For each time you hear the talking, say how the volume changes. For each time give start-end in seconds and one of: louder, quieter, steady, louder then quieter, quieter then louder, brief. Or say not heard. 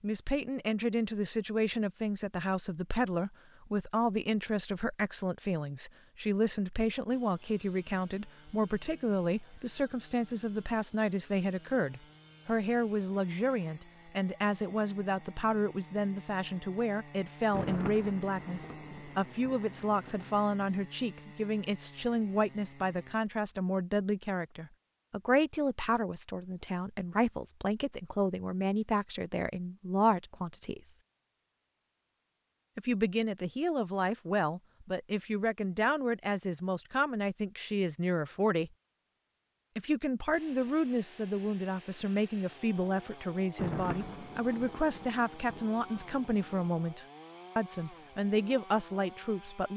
0.0-30.9 steady
32.8-38.7 steady
39.8-49.7 steady.